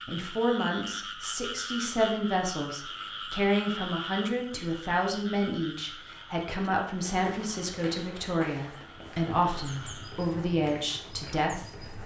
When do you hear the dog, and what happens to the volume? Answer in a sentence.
The dog can't be heard in this clip.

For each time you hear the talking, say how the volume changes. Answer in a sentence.
You can hear the talking from 0.1 to 11.9 s, at a steady volume.